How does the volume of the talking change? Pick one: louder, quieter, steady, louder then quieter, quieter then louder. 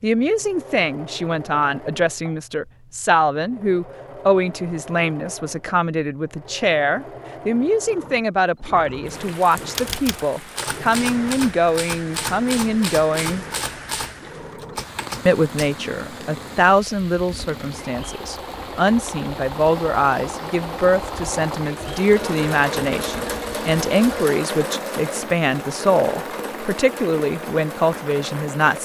steady.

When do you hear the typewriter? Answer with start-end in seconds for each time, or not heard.
9.6-15.8.